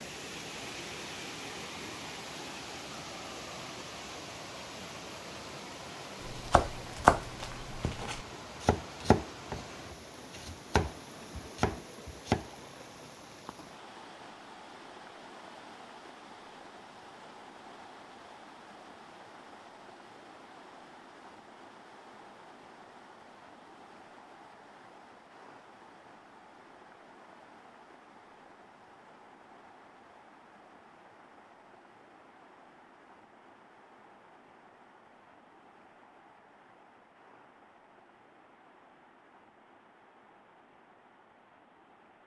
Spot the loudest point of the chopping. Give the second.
7 s.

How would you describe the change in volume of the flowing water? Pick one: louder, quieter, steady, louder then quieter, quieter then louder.
quieter.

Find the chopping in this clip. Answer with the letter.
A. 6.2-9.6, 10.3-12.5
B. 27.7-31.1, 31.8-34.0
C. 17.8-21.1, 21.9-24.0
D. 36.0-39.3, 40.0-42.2
A.